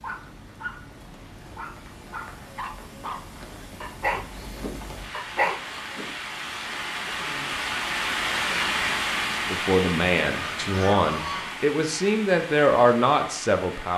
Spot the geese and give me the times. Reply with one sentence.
The geese can be heard from 10.2 to 11.5 s.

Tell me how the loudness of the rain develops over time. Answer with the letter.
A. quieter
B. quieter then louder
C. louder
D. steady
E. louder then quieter
E.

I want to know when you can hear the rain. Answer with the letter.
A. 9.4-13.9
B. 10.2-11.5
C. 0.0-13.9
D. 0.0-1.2
C.